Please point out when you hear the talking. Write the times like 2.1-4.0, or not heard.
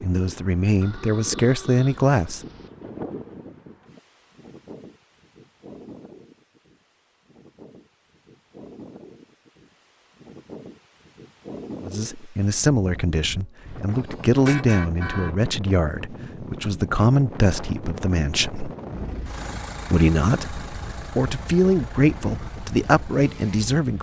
0.0-2.4, 11.8-18.7, 19.9-23.9.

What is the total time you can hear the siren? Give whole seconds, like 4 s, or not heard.
not heard.